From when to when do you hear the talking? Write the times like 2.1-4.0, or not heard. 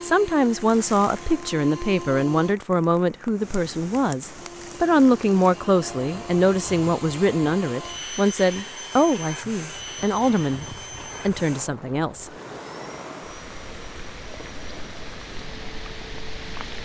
0.0-12.3.